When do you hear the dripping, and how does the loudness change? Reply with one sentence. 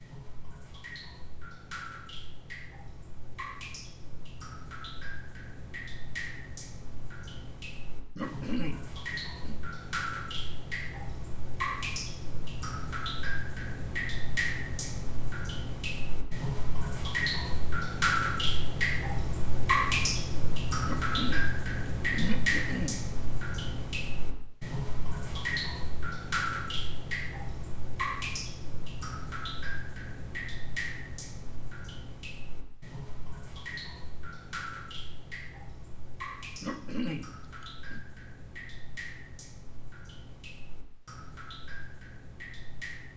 You can hear the dripping from 0.0 to 43.1 s, getting louder then quieter.